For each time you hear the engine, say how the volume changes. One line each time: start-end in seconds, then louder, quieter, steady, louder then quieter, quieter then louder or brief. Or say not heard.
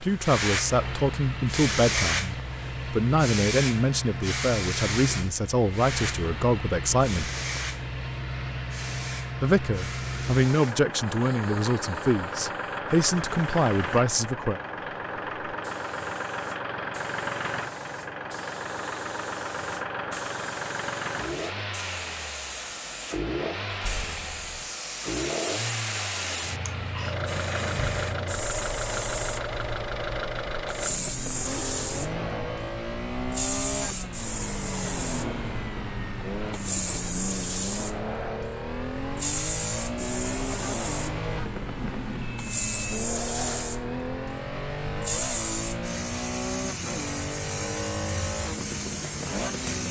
0.0-49.8 steady.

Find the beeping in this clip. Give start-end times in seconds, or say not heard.
41.8-43.0.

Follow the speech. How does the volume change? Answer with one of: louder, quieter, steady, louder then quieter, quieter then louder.
steady.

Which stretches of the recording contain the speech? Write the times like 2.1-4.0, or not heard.
0.0-7.3, 9.4-14.6.